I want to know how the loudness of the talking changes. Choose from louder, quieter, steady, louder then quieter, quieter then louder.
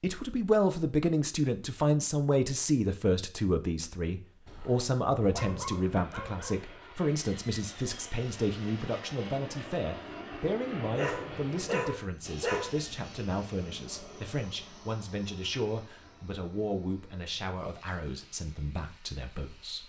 quieter.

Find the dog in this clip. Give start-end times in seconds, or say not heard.
4.5-6.6, 10.9-12.7.